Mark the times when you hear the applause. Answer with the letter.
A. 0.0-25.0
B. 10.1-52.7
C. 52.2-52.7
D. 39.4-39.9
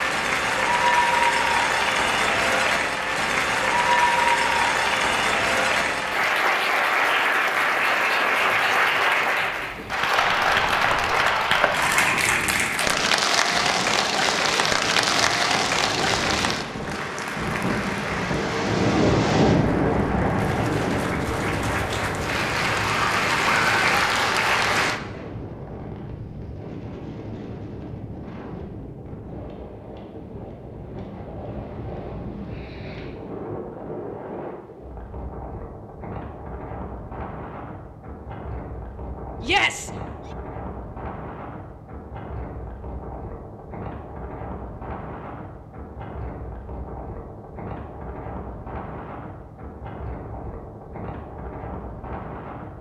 A.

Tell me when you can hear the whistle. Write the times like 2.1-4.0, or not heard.
not heard.